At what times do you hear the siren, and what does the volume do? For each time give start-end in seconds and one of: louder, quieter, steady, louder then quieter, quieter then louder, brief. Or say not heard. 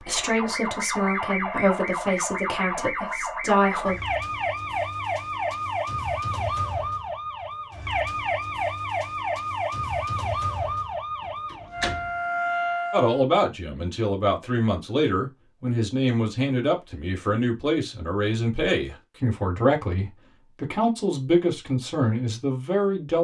0.0-13.2 steady.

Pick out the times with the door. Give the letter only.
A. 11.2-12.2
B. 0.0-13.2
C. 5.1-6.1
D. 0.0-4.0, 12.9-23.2
A.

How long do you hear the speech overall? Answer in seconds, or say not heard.
14 s.